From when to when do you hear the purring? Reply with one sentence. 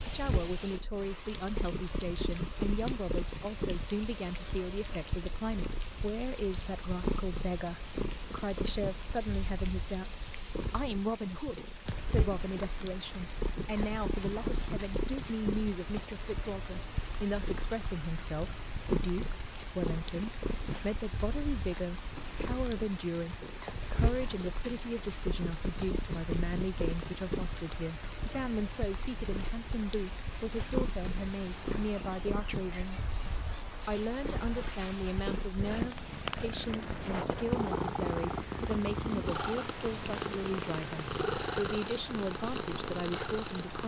The purring can be heard from 0.0 to 43.8 s.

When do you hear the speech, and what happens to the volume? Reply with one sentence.
You can hear the speech from 0.0 to 43.8 s, at a steady volume.